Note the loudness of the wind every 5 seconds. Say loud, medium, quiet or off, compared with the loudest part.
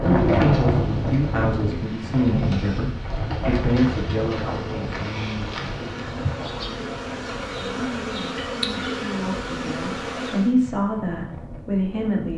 loud, quiet, quiet.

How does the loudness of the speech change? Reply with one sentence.
The volume of the speech goes down, then up.